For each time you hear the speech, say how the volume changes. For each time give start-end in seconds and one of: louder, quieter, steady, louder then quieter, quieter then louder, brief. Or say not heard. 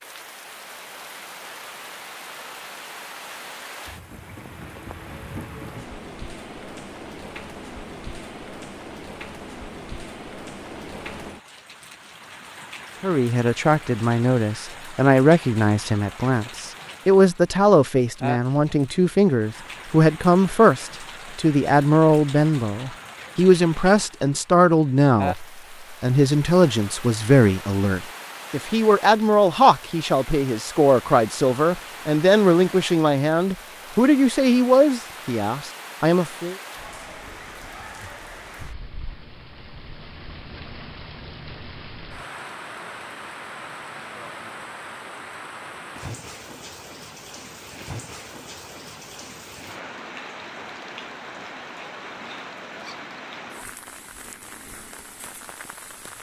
13.0-36.5 steady.